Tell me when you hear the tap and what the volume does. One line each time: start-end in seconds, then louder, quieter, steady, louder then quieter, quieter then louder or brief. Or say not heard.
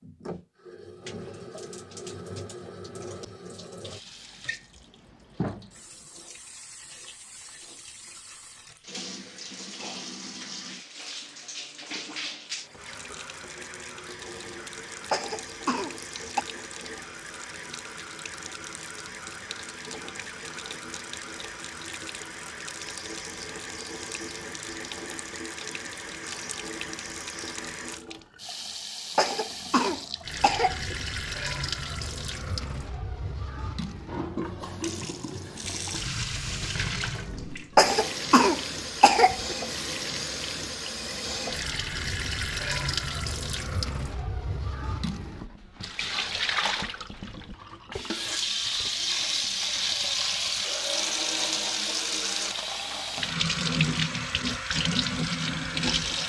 0.0-56.2 louder.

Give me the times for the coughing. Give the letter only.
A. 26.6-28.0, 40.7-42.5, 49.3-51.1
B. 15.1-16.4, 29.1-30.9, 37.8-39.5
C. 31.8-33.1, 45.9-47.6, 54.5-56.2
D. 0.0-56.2
B.